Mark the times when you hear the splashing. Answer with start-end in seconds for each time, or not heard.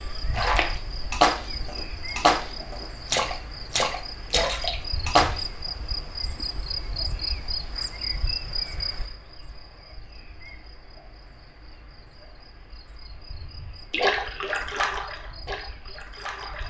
0.3-5.4, 13.9-16.6.